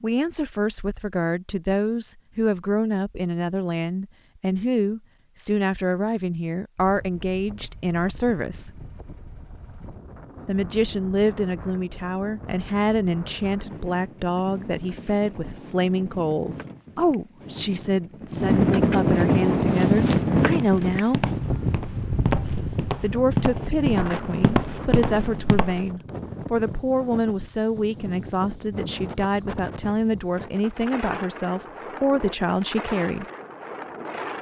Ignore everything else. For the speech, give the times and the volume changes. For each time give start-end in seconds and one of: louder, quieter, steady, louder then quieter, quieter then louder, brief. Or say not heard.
0.0-8.7 steady
10.4-21.2 steady
22.9-33.2 steady.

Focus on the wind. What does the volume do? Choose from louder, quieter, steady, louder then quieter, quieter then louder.
louder then quieter.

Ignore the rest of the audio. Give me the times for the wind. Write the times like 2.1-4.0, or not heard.
6.8-34.3.